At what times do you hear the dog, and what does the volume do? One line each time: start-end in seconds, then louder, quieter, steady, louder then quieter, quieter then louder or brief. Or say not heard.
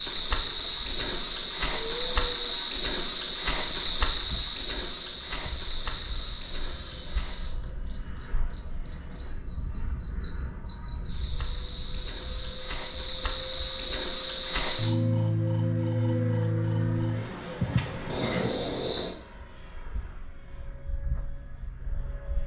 not heard.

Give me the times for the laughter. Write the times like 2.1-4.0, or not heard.
not heard.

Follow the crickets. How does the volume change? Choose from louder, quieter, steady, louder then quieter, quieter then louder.
quieter then louder.